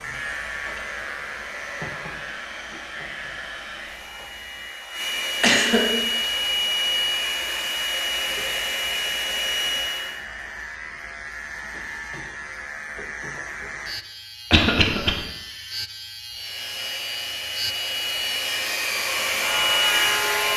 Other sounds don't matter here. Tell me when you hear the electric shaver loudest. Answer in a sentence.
The volume of the electric shaver peaks at 20 seconds.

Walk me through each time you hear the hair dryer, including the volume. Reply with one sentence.
The hair dryer can be heard from 0.0 to 10.2 s, getting louder; and from 16.3 to 20.5 s, getting louder.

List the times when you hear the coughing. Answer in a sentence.
You can hear the coughing from 5.4 to 6.3 s and from 14.5 to 15.2 s.